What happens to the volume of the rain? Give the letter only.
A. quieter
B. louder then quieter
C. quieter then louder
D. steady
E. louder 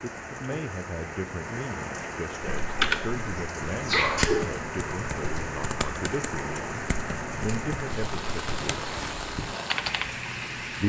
D.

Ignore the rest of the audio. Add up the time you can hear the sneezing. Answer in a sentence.
You can hear the sneezing for 2 seconds altogether.